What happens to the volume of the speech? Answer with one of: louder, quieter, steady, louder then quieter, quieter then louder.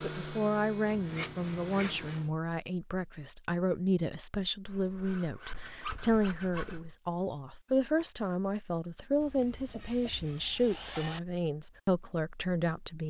steady.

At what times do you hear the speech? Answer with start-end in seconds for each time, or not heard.
0.0-13.0.